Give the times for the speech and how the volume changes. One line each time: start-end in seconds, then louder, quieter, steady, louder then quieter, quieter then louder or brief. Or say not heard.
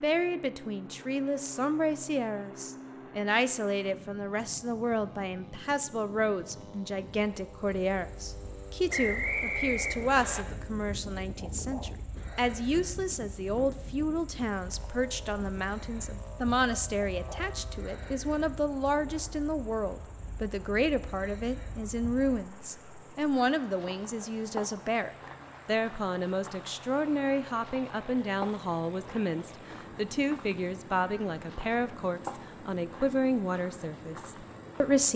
0.0-35.1 steady.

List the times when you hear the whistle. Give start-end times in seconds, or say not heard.
8.9-10.4.